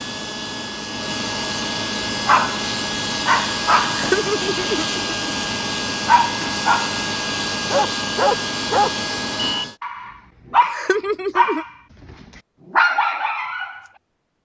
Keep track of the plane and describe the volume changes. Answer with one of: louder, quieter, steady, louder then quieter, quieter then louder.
steady.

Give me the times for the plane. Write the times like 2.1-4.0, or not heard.
0.0-9.8.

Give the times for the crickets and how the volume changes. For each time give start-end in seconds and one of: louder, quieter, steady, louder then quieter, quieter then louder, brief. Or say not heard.
not heard.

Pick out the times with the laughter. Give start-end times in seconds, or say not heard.
3.9-5.1, 10.6-11.7.